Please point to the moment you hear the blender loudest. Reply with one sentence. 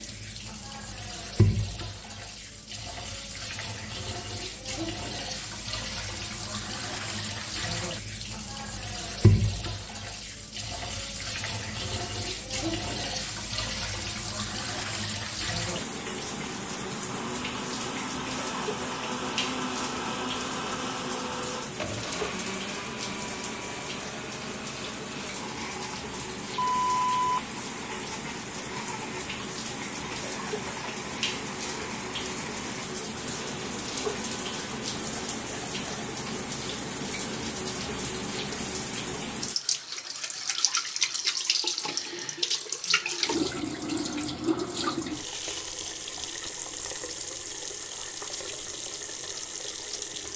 The loudest moment of the blender is at 20 seconds.